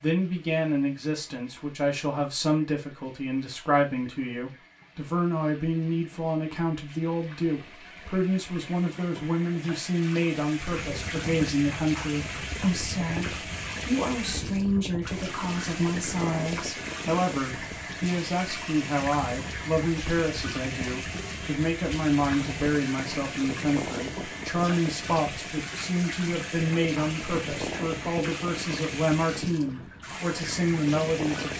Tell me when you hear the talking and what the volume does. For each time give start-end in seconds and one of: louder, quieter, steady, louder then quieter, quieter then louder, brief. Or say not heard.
0.0-31.5 steady.